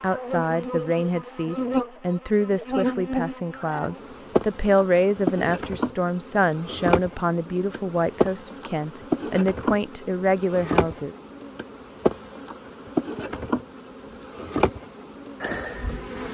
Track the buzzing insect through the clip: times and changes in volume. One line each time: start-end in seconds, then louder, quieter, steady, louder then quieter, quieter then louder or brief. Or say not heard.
0.0-16.2 steady.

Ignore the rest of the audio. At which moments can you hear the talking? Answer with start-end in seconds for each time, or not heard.
0.0-11.2.